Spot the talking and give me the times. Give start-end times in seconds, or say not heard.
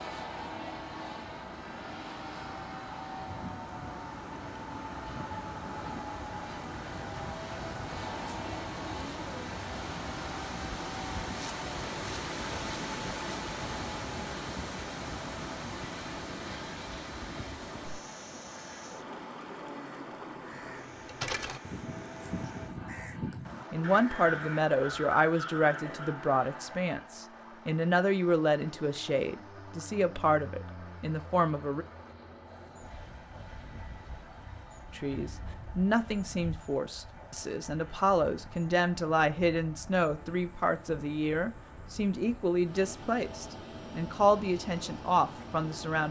23.7-31.9, 34.9-46.0.